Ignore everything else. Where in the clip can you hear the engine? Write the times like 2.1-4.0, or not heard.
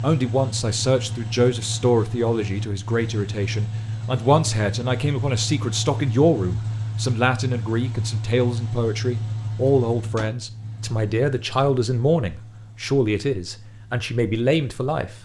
0.0-15.1.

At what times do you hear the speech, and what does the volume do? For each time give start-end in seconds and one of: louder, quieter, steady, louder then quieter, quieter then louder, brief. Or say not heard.
0.0-15.1 steady.